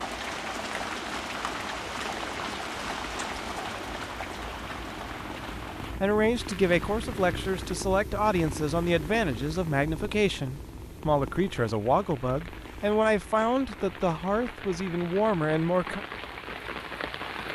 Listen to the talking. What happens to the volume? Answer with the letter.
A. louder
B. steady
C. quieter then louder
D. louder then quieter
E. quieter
B.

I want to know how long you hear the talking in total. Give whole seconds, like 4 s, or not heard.
10 s.